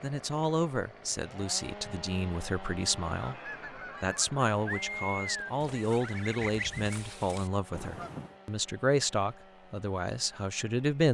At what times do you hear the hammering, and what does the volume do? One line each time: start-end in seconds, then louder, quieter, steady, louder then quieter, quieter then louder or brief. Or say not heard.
not heard.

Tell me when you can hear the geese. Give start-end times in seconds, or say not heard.
3.1-8.3.